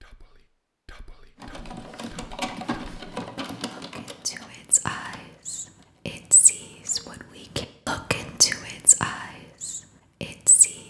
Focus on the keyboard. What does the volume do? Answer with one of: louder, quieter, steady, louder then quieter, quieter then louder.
quieter.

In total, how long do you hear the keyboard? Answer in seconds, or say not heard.
6 s.